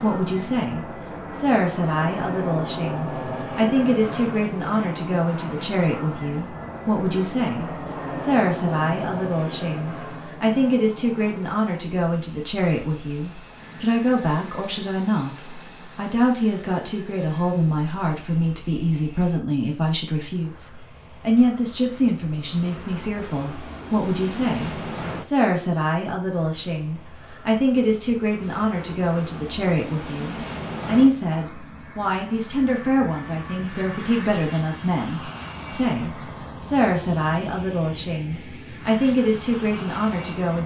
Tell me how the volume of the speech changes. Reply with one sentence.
The volume of the speech stays about the same.